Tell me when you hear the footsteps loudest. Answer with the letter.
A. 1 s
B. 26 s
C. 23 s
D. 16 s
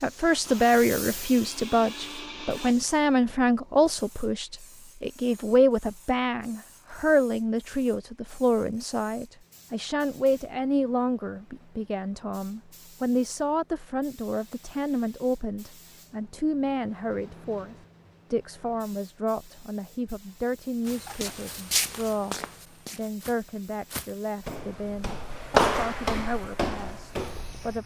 B.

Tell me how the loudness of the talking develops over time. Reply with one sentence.
The volume of the talking goes down.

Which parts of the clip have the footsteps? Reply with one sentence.
The footsteps can be heard from 20.9 to 27.8 s.